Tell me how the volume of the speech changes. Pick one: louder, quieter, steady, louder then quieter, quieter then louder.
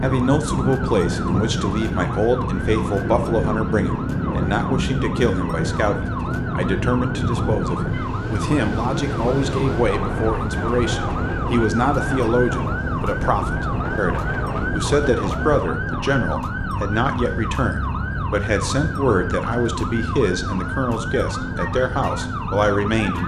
steady.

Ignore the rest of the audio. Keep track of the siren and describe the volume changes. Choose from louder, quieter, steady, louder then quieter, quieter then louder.
steady.